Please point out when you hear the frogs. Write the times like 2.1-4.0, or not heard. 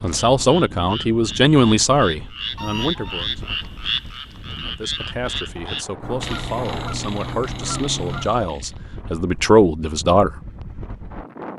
0.0-8.8.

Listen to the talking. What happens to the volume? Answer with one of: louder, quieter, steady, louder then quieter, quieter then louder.
quieter then louder.